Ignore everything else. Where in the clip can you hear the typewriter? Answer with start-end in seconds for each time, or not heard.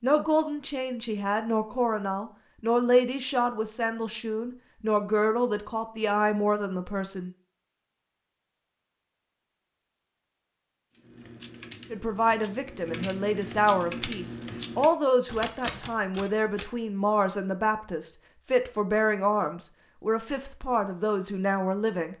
10.9-16.6.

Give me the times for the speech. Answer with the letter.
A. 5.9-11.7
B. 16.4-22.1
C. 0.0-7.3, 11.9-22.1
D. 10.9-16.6
C.